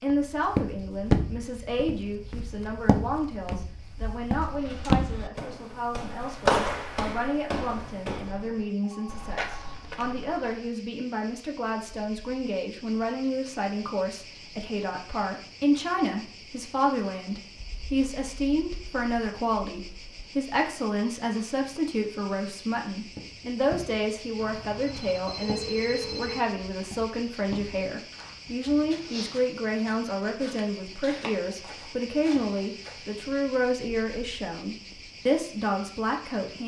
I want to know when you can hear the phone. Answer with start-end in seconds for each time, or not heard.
8.8-9.8, 24.4-26.4.